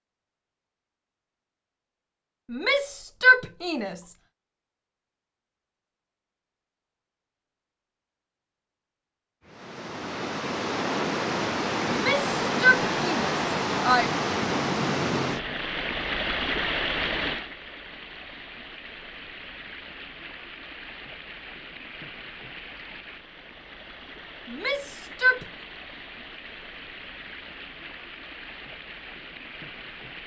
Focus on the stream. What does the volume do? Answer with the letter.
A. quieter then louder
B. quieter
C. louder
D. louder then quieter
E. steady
B.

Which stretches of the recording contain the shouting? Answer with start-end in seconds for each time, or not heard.
2.5-4.1, 11.9-14.1, 24.4-25.4.